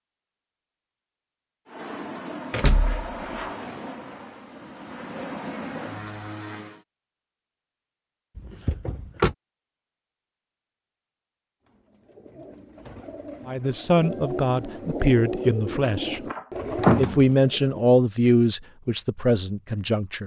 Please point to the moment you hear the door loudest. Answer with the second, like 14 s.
17 s.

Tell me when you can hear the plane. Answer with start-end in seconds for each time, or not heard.
1.6-6.8.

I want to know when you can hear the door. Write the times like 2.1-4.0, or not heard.
2.5-3.5, 8.3-9.3, 15.7-17.2.